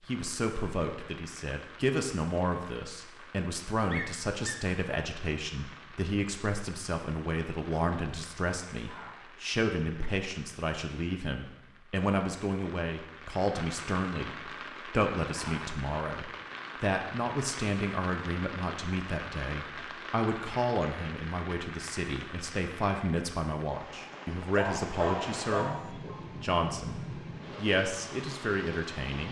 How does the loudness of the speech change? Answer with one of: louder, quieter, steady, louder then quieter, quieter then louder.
steady.